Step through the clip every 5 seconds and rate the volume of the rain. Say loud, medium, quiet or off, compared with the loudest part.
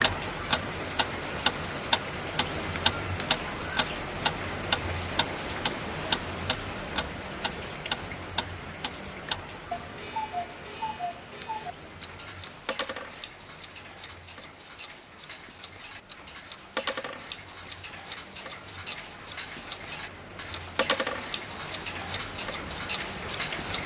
loud, loud, quiet, quiet, medium.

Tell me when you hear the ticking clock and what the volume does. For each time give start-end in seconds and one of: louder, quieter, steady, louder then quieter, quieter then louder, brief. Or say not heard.
0.0-23.8 quieter.